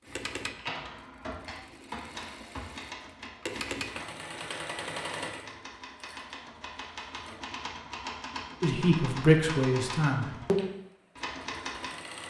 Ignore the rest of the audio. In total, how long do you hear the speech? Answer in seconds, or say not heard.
2 s.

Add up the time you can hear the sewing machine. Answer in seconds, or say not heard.
9 s.